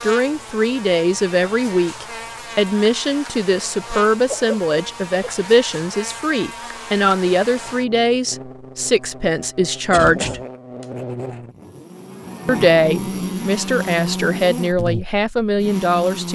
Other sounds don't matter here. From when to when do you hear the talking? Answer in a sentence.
The talking can be heard from 0.0 to 10.4 s and from 12.4 to 16.3 s.